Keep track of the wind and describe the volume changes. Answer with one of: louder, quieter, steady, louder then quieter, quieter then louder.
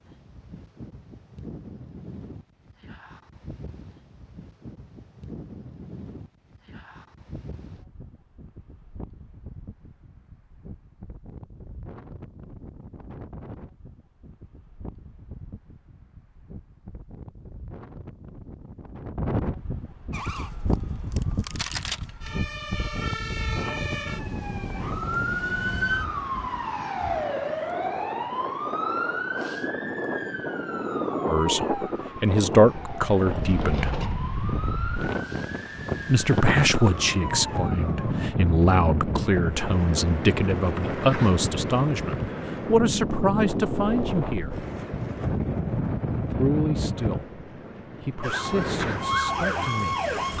louder.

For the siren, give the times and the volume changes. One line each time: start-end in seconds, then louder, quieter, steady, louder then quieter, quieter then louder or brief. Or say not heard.
20.1-38.1 louder then quieter
48.2-50.3 brief.